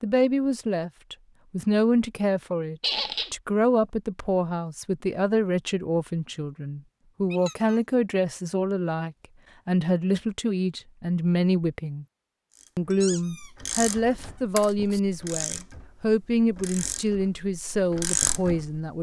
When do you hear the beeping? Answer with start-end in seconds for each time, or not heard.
not heard.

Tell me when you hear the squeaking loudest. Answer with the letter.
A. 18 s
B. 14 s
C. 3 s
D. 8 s
C.